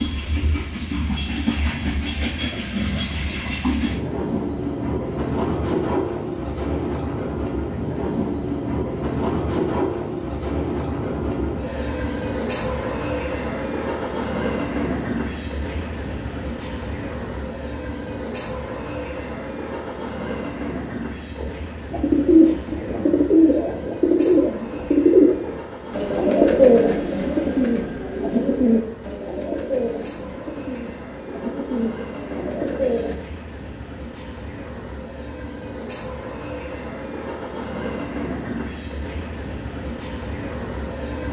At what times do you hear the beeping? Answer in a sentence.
The beeping can't be heard in this clip.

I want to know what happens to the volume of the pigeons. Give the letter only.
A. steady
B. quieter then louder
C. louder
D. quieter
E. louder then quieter
D.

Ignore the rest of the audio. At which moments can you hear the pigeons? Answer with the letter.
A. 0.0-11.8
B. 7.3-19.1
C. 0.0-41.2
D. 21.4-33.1
D.